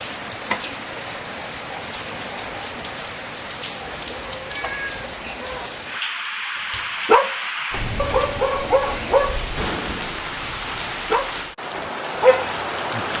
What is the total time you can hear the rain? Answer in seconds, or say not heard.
13 s.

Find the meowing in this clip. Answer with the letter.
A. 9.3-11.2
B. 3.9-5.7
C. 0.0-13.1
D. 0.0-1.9
B.